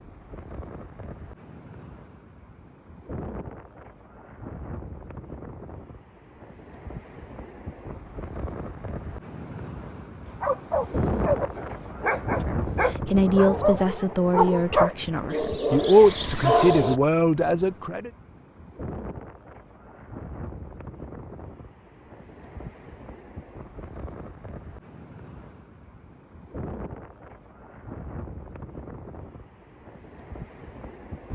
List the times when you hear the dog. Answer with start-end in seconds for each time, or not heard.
10.4-16.9.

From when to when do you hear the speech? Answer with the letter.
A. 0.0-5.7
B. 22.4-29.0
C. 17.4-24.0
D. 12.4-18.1
D.